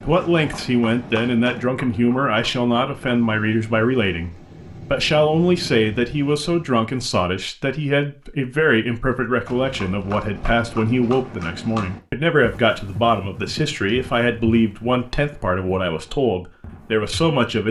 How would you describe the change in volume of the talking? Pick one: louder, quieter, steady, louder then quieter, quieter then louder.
steady.